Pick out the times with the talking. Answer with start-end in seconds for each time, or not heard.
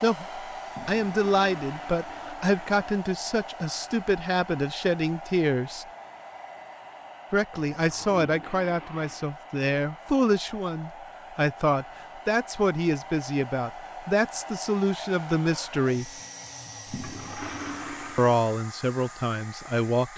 0.0-5.8, 7.3-16.1, 18.1-20.1.